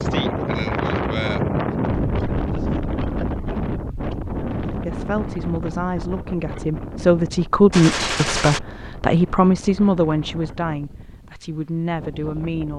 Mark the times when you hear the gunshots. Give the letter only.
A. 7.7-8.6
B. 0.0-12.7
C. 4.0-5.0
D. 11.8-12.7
A.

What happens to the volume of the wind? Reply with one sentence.
The volume of the wind goes down.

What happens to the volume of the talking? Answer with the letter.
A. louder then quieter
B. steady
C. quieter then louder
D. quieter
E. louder
A.